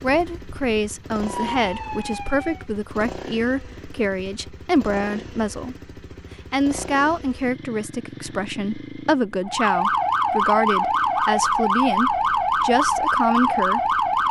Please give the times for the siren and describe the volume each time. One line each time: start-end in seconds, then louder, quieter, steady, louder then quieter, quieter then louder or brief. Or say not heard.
0.0-2.6 brief
9.4-14.2 steady.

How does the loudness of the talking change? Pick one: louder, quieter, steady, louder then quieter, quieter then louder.
steady.